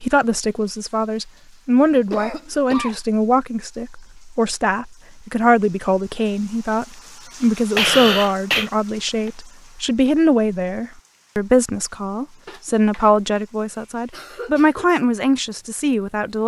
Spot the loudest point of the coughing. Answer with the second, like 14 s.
8 s.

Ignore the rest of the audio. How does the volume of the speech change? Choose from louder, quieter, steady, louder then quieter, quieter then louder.
steady.